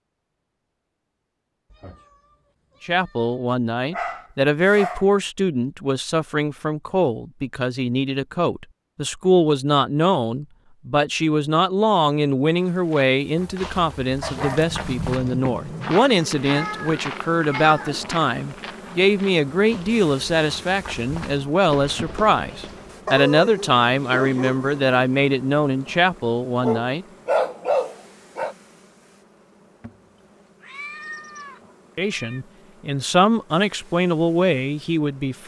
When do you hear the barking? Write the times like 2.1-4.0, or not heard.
3.9-5.0, 14.2-16.0, 23.1-24.9, 26.6-28.6.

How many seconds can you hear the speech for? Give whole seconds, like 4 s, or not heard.
28 s.